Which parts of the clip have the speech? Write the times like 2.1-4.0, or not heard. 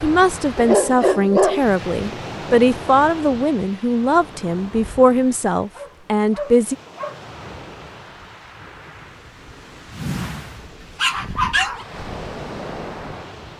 0.0-6.8.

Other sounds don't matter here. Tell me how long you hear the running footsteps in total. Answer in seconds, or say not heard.
not heard.